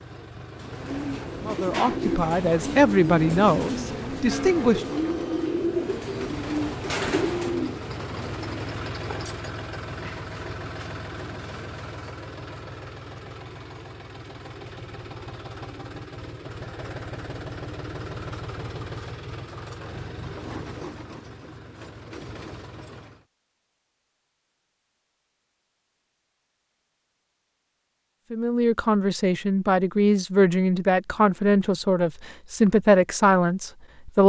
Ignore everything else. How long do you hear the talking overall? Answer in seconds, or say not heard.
9 s.